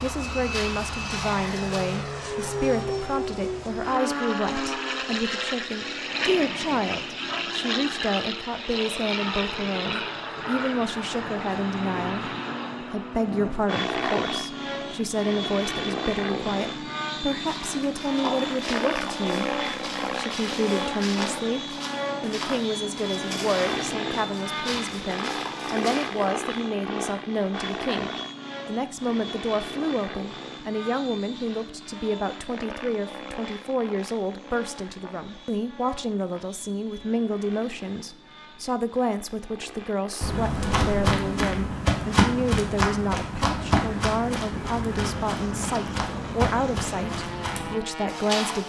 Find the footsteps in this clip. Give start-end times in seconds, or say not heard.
0.0-2.0, 17.4-26.3, 40.2-48.6.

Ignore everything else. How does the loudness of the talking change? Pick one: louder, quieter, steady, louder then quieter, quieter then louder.
steady.